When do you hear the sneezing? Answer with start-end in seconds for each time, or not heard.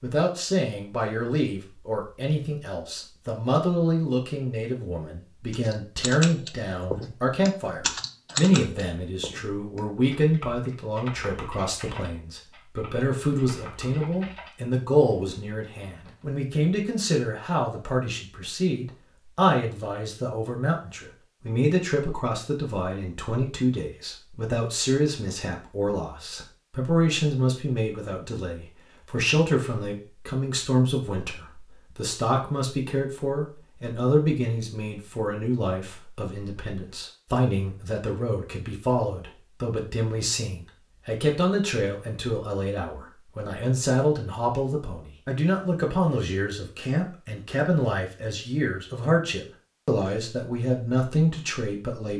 not heard.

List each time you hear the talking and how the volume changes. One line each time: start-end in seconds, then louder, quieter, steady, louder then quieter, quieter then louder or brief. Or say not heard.
0.0-52.1 steady.